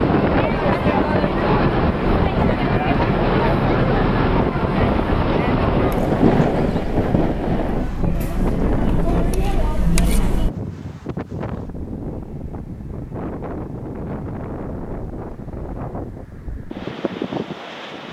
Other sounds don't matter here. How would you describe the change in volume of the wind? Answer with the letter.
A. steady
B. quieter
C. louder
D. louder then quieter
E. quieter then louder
B.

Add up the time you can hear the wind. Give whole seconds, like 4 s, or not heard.
18 s.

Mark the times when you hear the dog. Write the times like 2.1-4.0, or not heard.
not heard.